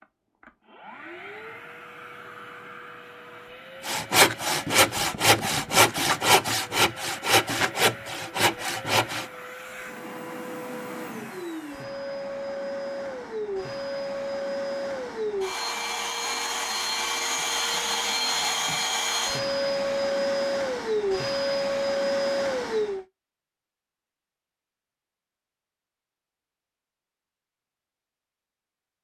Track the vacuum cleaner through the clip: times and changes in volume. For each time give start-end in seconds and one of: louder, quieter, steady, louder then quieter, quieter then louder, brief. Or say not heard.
0.0-23.1 louder.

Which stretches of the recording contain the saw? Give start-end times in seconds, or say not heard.
3.9-9.3.